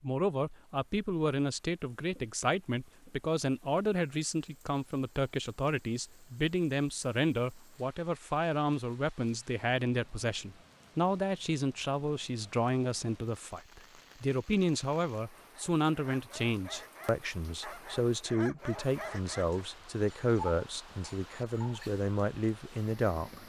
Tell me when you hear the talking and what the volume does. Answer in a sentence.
You can hear the talking from 0.0 to 23.4 s, at a steady volume.